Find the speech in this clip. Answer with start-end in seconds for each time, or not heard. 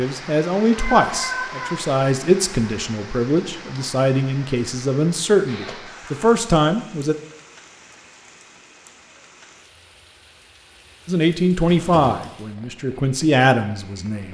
0.0-7.2, 11.1-14.2.